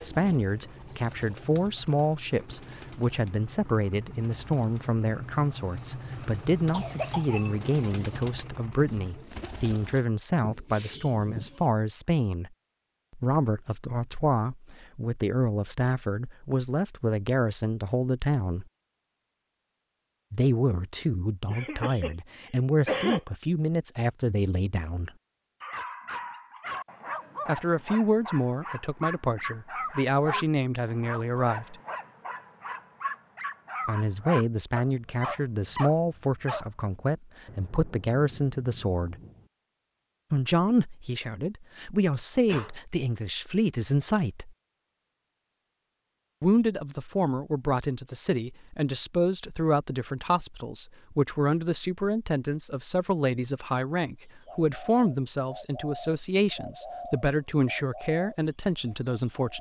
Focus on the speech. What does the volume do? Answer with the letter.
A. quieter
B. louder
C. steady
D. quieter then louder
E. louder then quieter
C.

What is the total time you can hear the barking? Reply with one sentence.
The barking can be heard for 11 seconds in total.